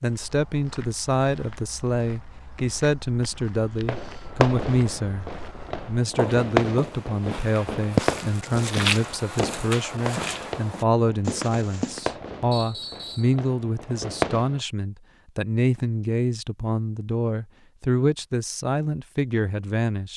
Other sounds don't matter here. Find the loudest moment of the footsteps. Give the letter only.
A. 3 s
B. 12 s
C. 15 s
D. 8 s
D.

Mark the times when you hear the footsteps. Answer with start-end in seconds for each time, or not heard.
0.1-12.1.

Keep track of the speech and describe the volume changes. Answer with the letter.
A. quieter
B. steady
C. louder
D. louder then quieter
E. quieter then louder
B.